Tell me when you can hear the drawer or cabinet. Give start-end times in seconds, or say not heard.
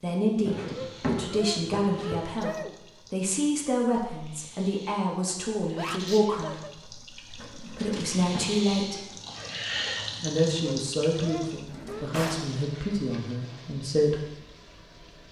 0.5-2.1, 7.3-8.5, 11.7-12.4.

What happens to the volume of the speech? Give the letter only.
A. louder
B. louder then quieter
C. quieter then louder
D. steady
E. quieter
D.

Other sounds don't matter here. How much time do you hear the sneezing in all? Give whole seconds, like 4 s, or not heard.
5 s.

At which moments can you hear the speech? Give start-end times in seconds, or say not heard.
0.0-9.1, 10.2-14.2.